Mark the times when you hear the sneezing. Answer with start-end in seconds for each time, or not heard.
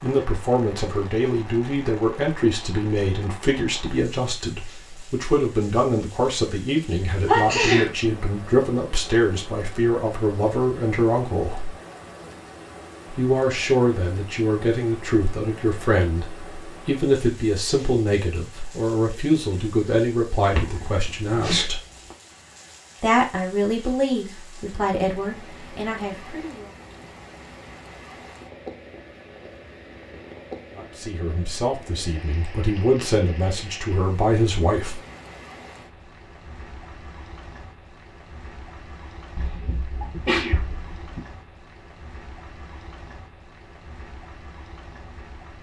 7.2-7.9, 20.6-22.1, 39.4-41.2.